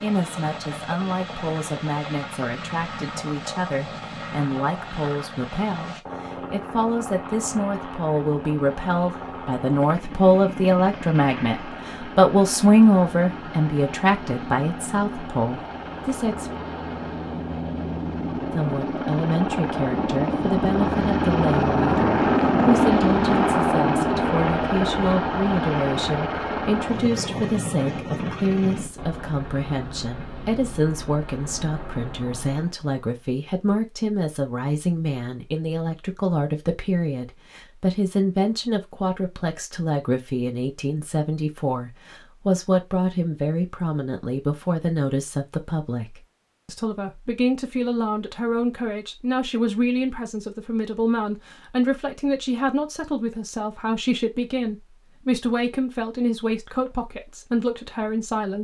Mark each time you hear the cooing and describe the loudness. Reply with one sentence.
You can't hear the cooing here.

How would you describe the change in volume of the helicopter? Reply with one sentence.
The volume of the helicopter goes up, then down.